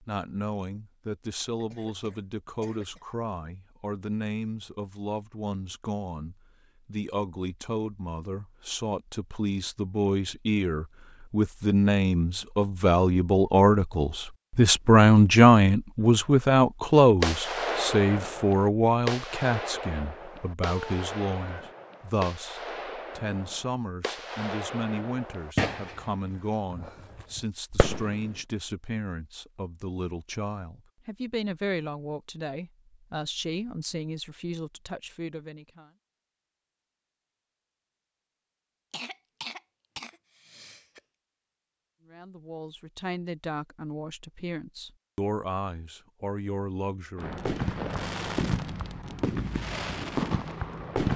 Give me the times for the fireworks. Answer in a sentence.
The fireworks can be heard from 17.2 to 28.4 s and from 47.1 to 51.1 s.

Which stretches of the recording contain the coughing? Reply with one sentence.
The coughing can be heard from 1.6 to 3.0 s, from 20.8 to 21.6 s and from 38.9 to 41.0 s.